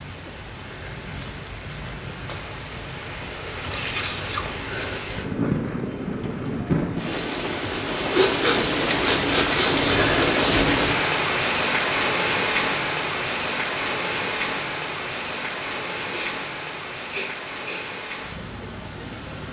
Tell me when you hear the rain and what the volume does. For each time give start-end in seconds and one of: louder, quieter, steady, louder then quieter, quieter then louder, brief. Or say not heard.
0.0-19.4 louder then quieter.